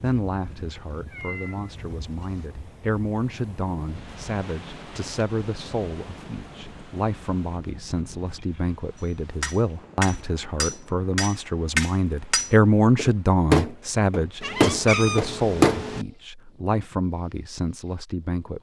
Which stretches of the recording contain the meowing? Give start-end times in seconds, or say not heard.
1.0-2.5, 14.4-16.1.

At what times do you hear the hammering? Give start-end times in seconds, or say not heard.
8.9-15.8.